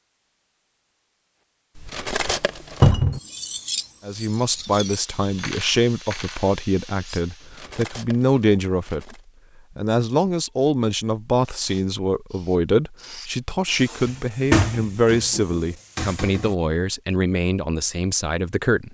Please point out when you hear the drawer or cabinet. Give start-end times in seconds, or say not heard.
2.8-3.2, 14.1-16.6.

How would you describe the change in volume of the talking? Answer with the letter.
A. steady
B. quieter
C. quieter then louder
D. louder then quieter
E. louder
A.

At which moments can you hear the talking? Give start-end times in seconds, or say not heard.
4.0-9.2, 9.8-18.8.